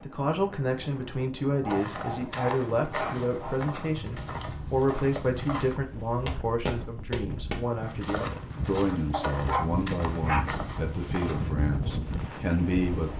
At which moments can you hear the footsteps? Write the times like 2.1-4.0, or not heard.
1.6-11.6.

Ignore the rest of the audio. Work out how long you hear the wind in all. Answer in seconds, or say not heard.
13 s.